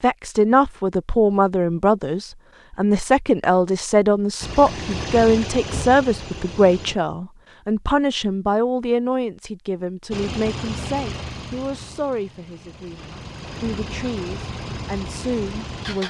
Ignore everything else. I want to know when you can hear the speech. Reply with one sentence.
The speech can be heard from 0.0 to 16.0 s.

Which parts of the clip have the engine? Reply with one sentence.
The engine can be heard from 4.4 to 7.0 s and from 10.1 to 16.0 s.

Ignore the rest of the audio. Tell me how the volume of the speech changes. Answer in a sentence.
The volume of the speech goes down.